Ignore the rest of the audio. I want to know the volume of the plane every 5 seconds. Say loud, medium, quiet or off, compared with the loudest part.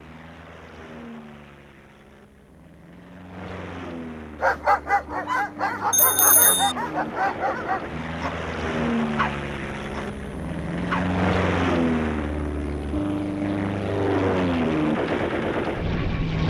quiet, medium, loud, loud.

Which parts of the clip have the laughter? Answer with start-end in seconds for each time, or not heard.
not heard.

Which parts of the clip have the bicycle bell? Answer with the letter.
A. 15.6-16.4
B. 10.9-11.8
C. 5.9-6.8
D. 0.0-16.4
C.